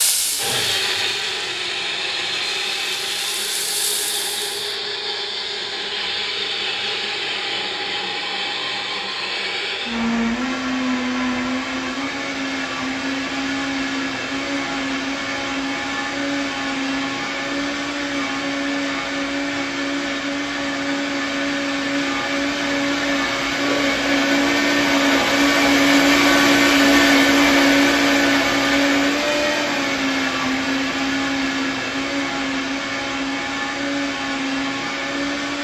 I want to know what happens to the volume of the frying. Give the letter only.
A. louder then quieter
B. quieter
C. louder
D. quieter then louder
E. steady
D.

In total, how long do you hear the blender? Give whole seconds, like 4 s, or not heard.
35 s.